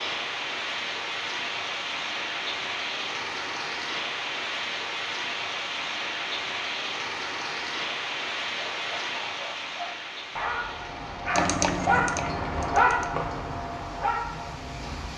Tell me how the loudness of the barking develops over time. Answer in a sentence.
The loudness of the barking goes up, then down.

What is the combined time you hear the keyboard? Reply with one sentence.
You can hear the keyboard for 2 seconds altogether.